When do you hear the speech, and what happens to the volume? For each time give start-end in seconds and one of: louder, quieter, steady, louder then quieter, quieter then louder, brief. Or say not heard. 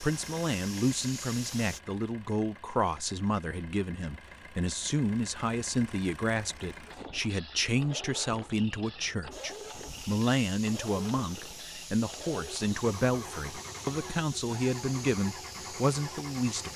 0.0-16.7 steady.